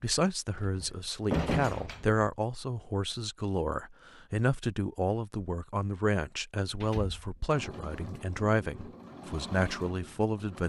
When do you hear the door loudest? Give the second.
1 s.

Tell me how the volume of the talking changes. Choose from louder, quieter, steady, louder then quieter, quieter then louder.
steady.